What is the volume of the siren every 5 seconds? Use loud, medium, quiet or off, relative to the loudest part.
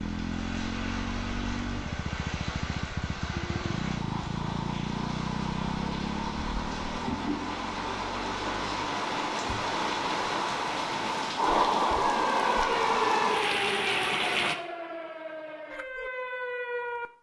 off, off, loud, loud.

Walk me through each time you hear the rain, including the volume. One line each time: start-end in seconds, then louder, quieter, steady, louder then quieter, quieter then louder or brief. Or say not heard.
0.0-14.6 louder.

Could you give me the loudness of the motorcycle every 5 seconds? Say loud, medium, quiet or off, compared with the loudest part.
loud, loud, off, off.